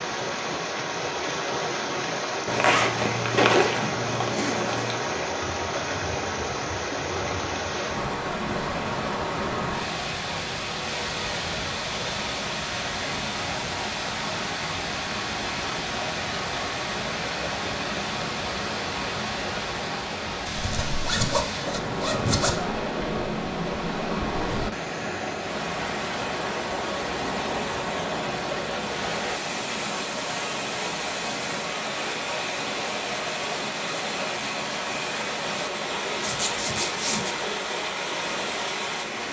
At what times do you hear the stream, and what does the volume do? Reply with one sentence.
You can hear the stream from 0.0 to 39.2 s, at a steady volume.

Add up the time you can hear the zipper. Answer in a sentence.
You can hear the zipper for 6 seconds altogether.